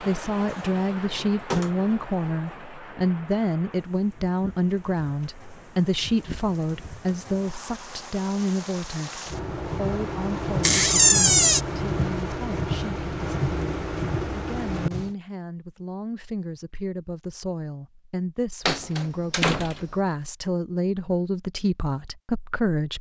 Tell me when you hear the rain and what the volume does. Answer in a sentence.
You can hear the rain from 0.0 to 15.2 s, getting quieter then louder.